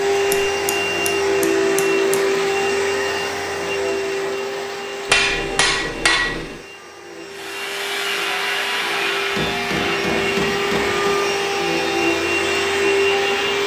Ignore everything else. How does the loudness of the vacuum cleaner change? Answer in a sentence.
The loudness of the vacuum cleaner goes down, then up.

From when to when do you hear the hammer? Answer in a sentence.
The hammer can be heard from 0.3 to 2.2 s, from 5.0 to 6.6 s and from 9.3 to 11.2 s.